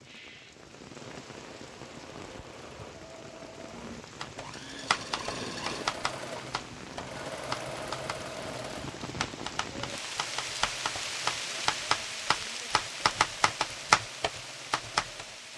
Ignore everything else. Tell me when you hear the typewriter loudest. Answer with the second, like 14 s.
14 s.